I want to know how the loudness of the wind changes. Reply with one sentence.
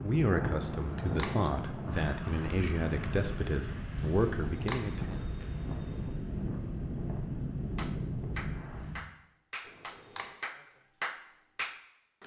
The volume of the wind stays about the same.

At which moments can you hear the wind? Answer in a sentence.
You can hear the wind from 0.0 to 9.0 s.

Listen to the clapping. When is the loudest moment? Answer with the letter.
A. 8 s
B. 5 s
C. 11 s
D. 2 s
C.